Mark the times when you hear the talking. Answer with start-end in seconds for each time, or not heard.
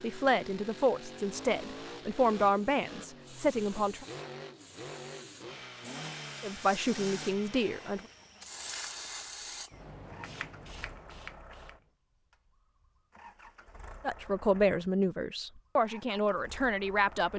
0.0-4.0, 6.4-8.1, 14.0-17.3.